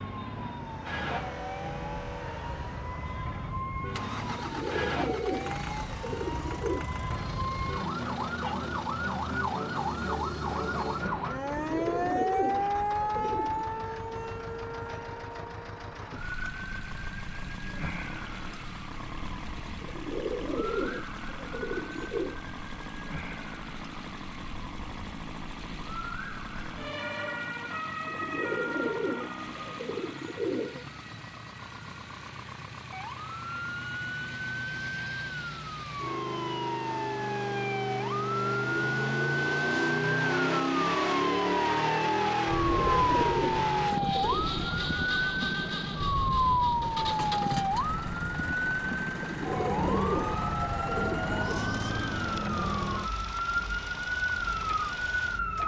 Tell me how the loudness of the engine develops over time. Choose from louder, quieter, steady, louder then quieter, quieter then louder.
louder then quieter.